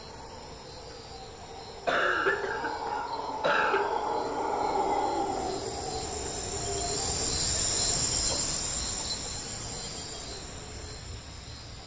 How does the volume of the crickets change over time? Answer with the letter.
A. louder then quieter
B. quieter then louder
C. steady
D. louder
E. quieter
A.